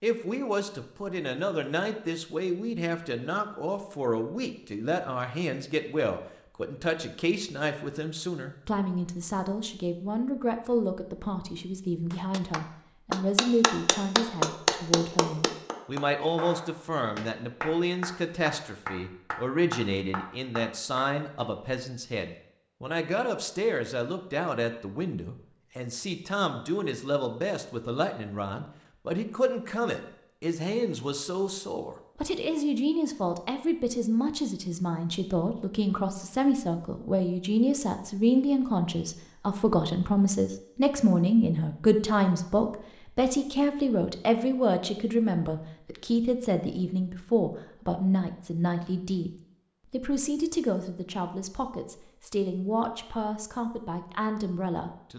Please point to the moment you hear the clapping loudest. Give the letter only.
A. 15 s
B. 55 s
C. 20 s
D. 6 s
A.